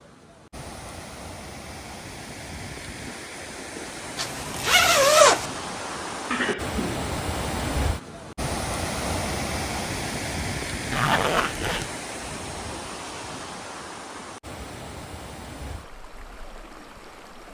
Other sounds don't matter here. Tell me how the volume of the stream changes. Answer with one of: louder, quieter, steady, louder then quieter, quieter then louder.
louder then quieter.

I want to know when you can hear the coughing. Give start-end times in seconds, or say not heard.
6.3-7.1.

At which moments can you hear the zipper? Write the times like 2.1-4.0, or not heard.
4.2-5.5, 10.9-11.9.